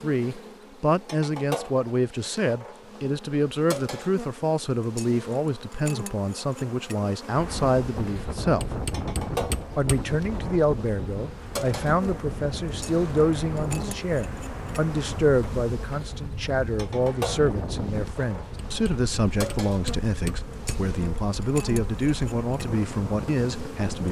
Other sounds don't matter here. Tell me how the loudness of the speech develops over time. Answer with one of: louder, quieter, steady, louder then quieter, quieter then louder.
steady.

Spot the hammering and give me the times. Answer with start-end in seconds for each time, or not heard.
8.6-10.2, 18.6-20.9.